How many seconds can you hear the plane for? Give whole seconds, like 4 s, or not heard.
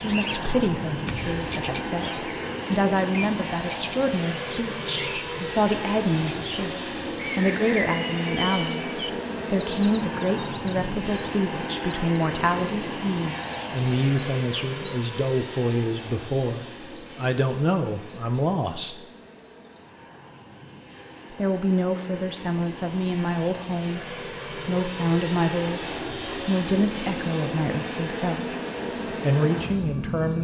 30 s.